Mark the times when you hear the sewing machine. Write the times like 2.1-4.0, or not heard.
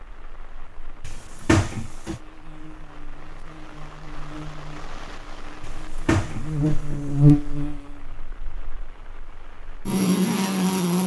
not heard.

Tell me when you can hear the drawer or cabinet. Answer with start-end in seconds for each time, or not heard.
1.0-2.2, 5.6-7.2.